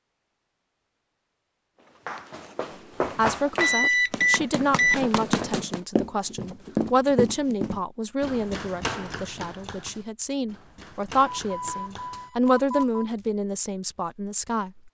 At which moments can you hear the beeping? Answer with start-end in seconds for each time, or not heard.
3.5-5.0, 11.4-13.1.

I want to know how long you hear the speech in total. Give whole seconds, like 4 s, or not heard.
12 s.